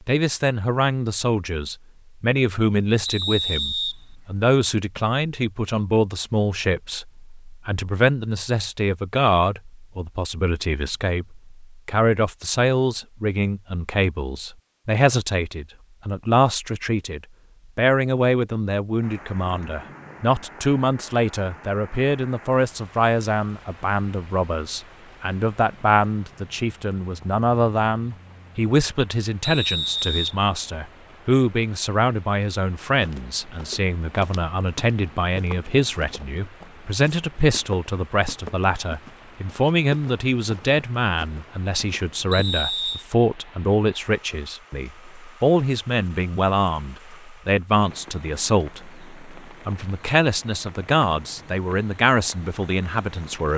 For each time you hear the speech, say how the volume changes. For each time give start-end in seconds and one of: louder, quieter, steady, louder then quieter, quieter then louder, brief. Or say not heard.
0.1-53.5 steady.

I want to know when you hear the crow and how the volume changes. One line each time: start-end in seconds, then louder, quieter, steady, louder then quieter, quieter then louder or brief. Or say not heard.
not heard.